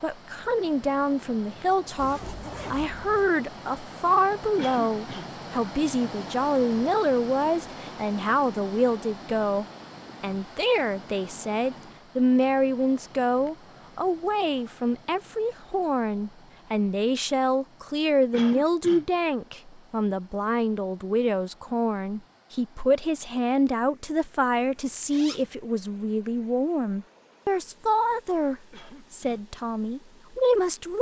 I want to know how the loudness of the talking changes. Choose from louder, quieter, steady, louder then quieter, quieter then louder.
steady.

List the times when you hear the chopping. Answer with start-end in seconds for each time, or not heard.
not heard.